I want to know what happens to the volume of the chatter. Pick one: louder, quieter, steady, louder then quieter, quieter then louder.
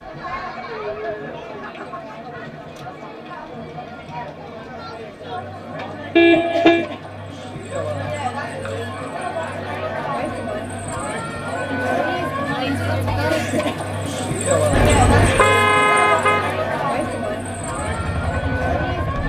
louder.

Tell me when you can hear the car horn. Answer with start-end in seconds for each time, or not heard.
6.2-6.8, 14.7-16.5.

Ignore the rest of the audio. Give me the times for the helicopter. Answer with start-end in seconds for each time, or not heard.
17.8-19.2.